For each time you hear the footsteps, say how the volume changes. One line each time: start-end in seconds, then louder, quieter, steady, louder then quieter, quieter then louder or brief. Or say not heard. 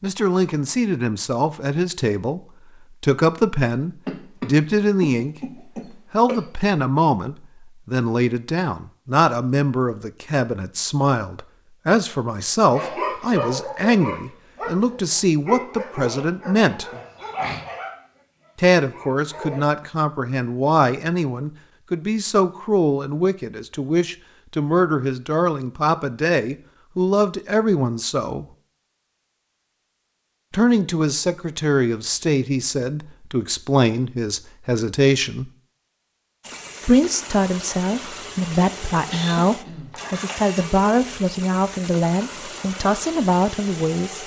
not heard.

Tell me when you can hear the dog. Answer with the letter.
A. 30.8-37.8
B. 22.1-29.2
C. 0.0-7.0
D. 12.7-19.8
D.